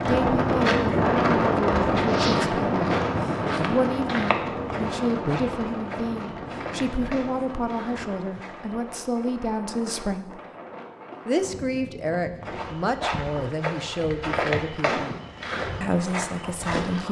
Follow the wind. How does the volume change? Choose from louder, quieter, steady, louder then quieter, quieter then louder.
quieter.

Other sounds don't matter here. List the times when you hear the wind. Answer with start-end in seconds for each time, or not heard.
0.0-12.8.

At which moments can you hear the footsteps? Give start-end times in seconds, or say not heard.
0.0-8.9, 12.4-17.0.